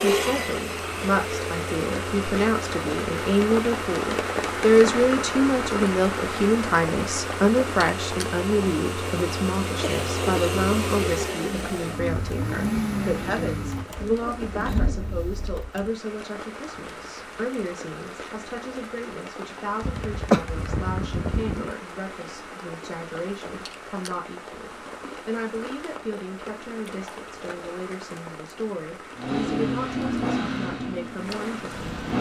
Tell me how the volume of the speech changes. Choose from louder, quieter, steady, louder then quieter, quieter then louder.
quieter.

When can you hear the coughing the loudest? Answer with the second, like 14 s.
20 s.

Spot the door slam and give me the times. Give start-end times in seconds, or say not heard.
not heard.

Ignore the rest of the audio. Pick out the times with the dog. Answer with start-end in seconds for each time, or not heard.
not heard.